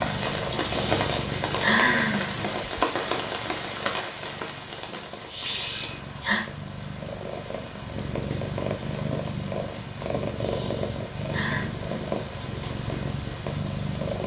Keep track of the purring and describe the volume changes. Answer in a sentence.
The loudness of the purring goes down, then up.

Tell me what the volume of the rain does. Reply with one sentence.
The loudness of the rain goes down.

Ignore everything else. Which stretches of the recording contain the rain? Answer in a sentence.
The rain can be heard from 0.0 to 14.0 s.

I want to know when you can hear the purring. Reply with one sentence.
The purring can be heard from 0.0 to 14.2 s.